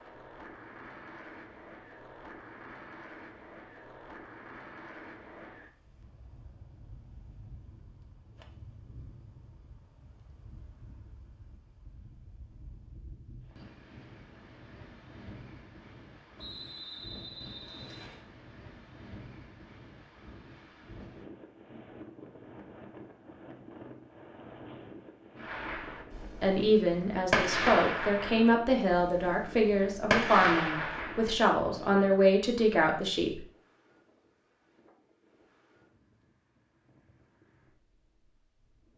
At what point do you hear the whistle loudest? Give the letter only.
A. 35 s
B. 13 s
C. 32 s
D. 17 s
D.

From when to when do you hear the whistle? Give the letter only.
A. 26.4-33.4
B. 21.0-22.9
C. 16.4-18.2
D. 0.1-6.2
C.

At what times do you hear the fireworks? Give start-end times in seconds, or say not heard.
25.4-31.4.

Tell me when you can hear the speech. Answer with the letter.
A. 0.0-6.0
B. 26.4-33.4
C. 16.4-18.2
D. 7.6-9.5
B.